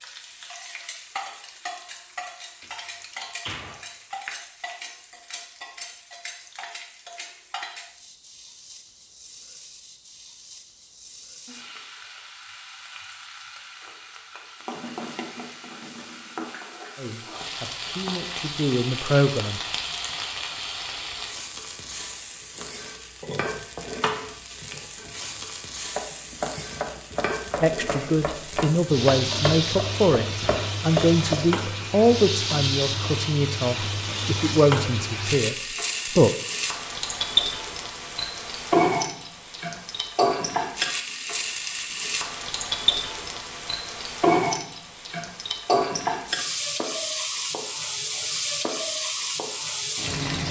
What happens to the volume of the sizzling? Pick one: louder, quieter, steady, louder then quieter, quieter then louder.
louder.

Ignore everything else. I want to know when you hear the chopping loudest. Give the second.
31 s.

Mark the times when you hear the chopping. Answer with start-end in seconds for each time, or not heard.
23.2-31.6.